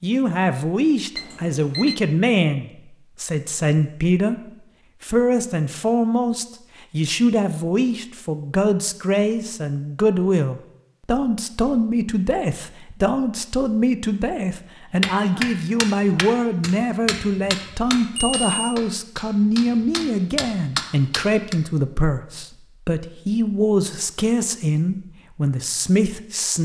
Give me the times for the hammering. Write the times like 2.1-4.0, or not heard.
15.0-21.6.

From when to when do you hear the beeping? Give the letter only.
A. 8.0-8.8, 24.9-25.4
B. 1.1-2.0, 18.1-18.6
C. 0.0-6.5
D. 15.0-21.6
B.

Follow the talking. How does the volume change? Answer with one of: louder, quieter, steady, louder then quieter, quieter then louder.
steady.